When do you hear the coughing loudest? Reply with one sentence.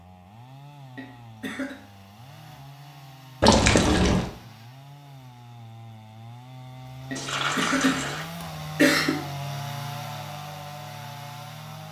The volume of the coughing peaks at 9 seconds.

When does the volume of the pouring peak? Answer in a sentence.
The loudest moment of the pouring is at 4 seconds.